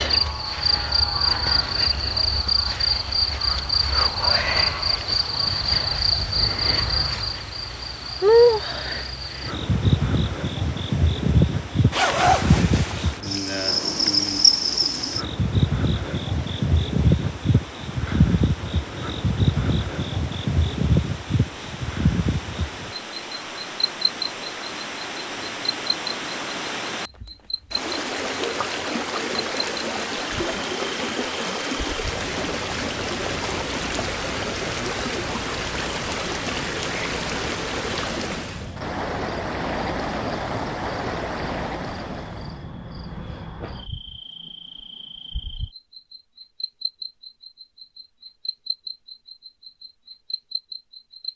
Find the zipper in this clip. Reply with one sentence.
The zipper can be heard from 11.9 to 13.2 s.